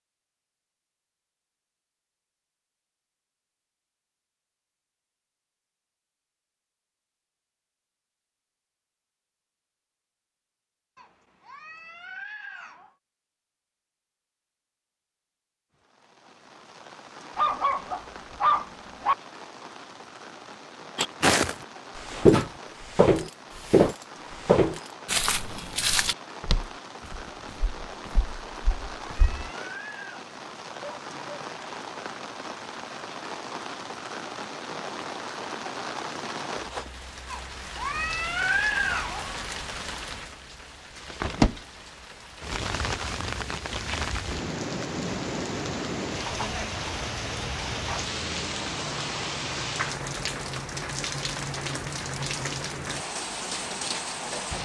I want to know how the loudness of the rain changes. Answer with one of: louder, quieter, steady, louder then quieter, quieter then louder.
louder.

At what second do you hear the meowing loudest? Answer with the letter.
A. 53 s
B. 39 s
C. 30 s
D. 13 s
B.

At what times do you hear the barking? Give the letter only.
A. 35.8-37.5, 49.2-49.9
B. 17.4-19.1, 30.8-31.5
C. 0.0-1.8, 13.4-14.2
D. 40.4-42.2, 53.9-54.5
B.